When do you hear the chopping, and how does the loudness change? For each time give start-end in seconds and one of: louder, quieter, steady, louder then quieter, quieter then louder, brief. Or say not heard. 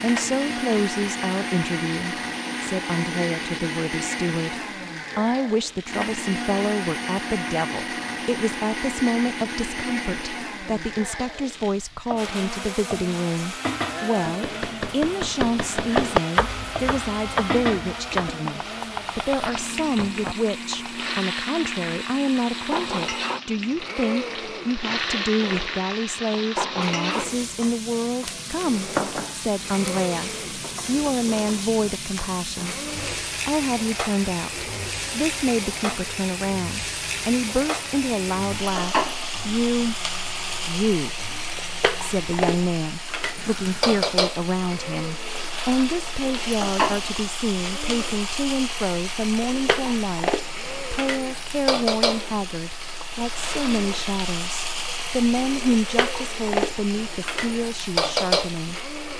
14.2-20.9 louder then quieter.